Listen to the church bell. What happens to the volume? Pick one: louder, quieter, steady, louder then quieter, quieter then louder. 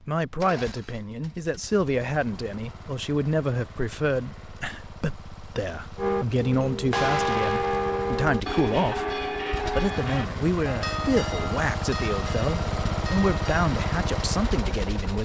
quieter.